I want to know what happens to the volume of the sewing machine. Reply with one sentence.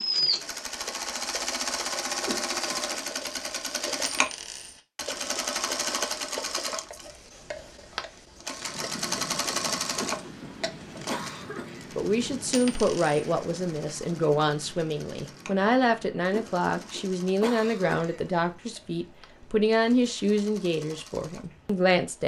The loudness of the sewing machine goes down.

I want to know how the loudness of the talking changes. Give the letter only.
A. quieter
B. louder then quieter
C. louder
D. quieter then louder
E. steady
E.